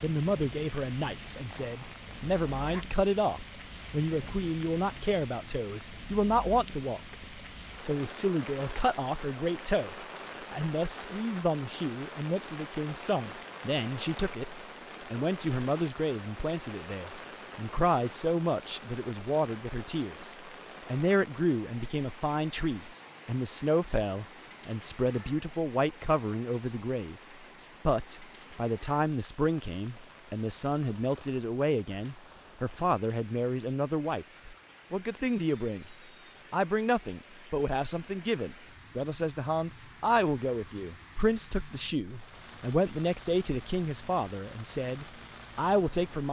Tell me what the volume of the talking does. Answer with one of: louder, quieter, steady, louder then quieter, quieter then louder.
steady.